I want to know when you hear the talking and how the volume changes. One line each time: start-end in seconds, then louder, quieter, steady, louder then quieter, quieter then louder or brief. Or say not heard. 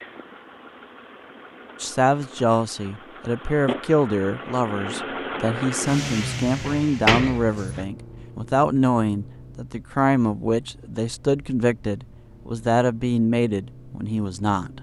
1.8-14.7 steady.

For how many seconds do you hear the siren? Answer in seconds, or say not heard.
not heard.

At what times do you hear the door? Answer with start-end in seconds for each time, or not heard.
6.7-7.8.